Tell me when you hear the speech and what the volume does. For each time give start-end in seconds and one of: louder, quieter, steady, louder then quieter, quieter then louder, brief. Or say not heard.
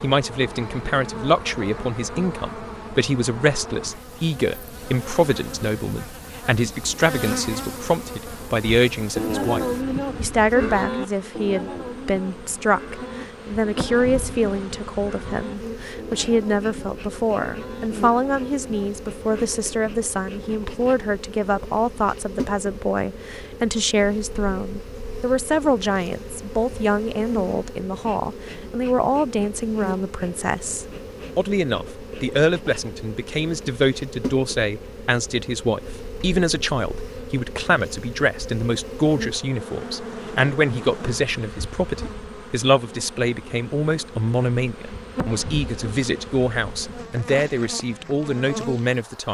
0.0-49.2 steady.